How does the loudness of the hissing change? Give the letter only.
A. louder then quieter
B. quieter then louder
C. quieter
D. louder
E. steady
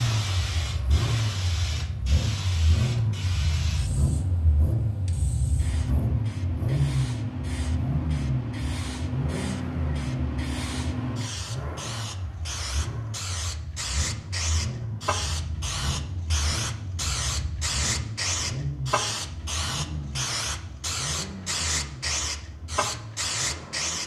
D.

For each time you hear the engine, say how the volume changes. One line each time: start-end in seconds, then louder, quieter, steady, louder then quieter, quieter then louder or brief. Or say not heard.
0.0-24.0 quieter.